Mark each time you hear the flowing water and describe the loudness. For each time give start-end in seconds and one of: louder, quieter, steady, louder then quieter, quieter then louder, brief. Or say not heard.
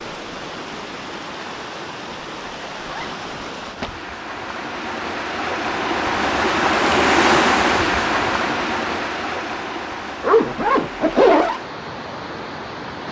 0.0-13.0 louder then quieter.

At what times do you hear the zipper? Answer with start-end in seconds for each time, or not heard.
2.9-4.0, 10.2-11.6.